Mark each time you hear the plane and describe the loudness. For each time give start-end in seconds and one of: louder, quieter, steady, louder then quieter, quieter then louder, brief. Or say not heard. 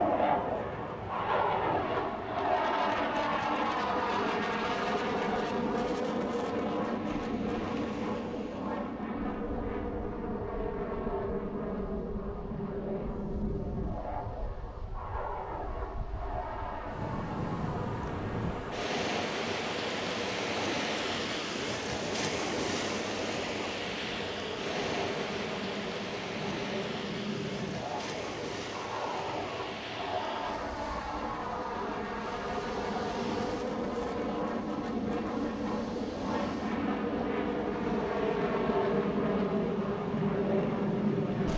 0.0-41.5 quieter then louder.